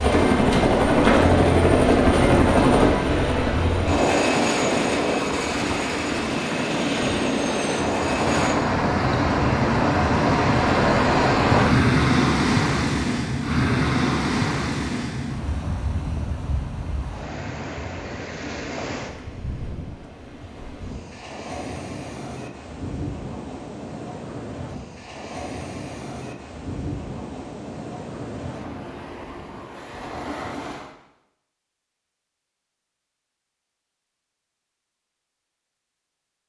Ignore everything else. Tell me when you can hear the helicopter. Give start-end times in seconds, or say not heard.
0.0-8.6.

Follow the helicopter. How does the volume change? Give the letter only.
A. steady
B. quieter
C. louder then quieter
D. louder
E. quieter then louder
B.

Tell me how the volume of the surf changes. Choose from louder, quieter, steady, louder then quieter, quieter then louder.
louder then quieter.